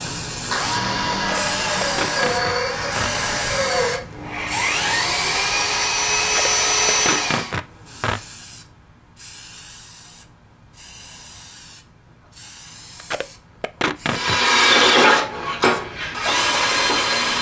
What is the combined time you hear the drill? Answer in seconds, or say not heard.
11 s.